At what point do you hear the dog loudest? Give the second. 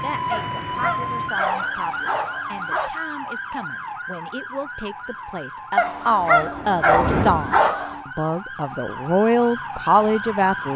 7 s.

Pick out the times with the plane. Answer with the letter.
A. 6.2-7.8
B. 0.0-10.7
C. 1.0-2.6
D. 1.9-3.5
A.